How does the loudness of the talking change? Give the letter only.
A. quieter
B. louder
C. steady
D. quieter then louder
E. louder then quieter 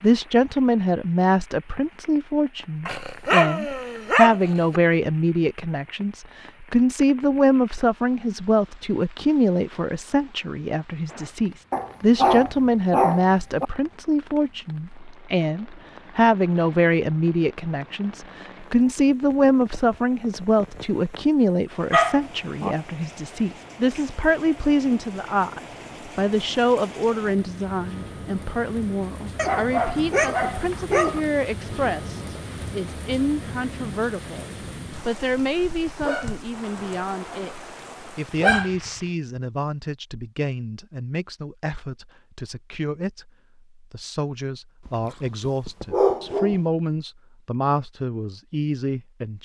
A.